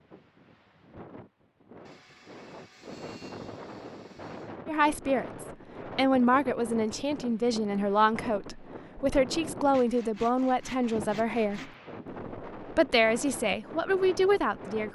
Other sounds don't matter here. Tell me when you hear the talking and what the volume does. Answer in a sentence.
You can hear the talking from 4.7 to 11.7 s, at a steady volume; and briefly from 12.6 to 14.9 s.